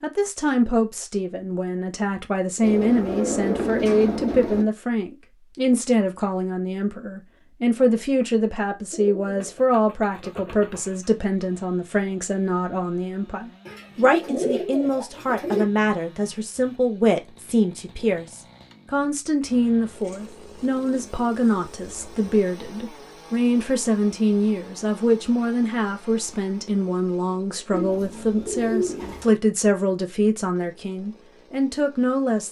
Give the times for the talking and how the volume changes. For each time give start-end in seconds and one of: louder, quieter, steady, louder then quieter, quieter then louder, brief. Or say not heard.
0.0-32.4 steady.